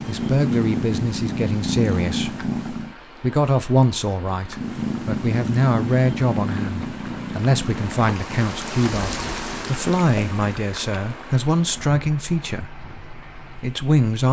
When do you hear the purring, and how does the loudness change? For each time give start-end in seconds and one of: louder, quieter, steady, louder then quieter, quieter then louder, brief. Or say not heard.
0.0-3.0 brief
4.5-10.4 quieter.